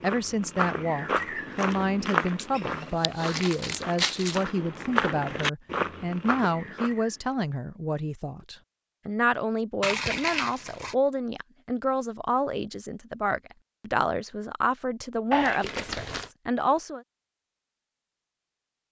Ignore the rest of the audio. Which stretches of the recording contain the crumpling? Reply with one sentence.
The crumpling can be heard from 2.4 to 4.4 s, from 9.8 to 10.9 s and from 15.3 to 16.3 s.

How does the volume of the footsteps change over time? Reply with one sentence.
The volume of the footsteps goes down, then up.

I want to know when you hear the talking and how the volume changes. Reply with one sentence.
You can hear the talking from 0.0 to 17.0 s, at a steady volume.